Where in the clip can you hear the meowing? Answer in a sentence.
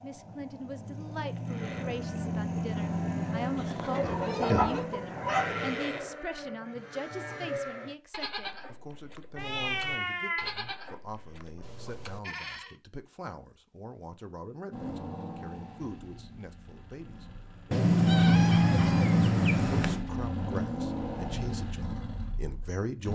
You can hear the meowing from 3.5 to 4.8 s, from 9.3 to 10.6 s and from 17.7 to 20.1 s.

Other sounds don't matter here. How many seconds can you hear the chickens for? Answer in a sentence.
You can hear the chickens for 2 seconds altogether.